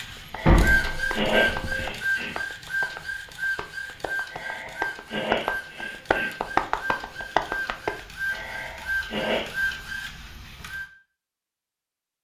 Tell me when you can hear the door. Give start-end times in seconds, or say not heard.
0.5-1.9.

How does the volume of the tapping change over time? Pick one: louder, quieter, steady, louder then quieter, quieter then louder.
quieter then louder.